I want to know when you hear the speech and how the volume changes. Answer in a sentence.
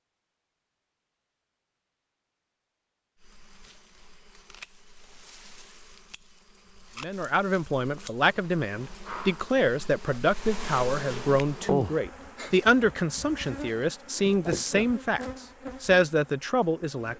The speech can be heard from 7.0 to 17.1 s, at a steady volume.